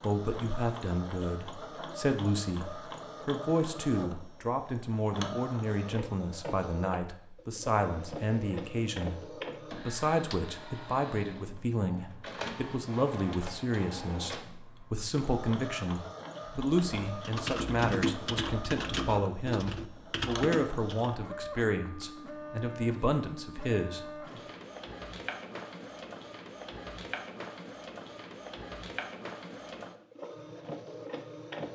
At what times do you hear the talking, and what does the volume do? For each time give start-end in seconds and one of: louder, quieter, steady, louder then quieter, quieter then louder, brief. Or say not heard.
0.0-24.2 steady.